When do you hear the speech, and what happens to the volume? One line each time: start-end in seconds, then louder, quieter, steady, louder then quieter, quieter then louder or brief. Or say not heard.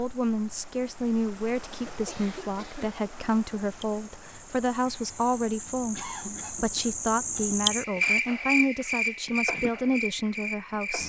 0.0-11.0 steady.